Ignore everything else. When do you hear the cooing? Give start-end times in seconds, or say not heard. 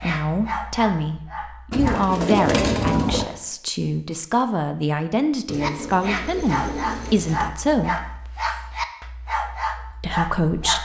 1.7-3.2, 5.5-7.5.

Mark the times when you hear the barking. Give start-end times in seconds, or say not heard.
0.0-2.1, 5.6-10.8.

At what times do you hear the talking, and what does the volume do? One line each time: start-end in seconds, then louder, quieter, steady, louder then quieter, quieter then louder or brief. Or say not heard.
0.0-8.0 steady
10.0-10.8 brief.